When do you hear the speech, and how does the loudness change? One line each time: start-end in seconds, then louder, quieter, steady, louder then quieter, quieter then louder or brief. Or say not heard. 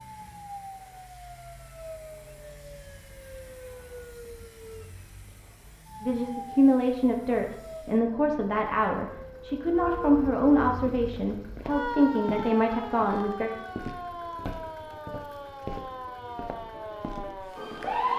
6.0-13.5 steady.